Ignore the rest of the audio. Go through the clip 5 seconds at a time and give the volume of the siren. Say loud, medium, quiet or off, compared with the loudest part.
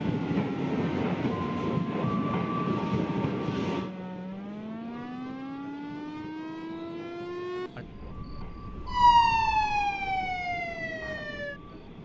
medium, loud, medium.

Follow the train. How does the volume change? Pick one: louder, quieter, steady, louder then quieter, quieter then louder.
quieter.